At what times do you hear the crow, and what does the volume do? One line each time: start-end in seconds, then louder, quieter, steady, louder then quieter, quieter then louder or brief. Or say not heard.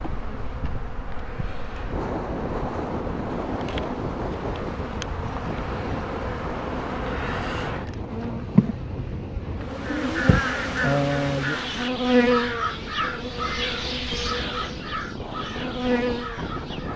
9.8-16.9 quieter.